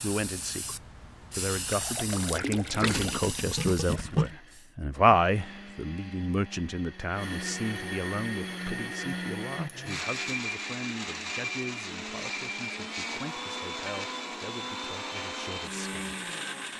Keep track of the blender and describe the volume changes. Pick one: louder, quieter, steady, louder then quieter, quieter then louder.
louder.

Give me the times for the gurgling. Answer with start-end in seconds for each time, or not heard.
1.7-4.3.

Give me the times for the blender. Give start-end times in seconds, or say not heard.
3.8-16.7.